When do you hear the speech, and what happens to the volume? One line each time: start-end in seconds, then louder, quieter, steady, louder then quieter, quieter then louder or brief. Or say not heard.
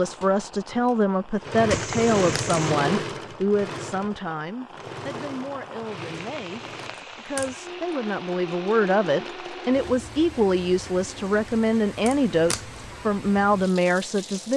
0.0-14.5 quieter then louder.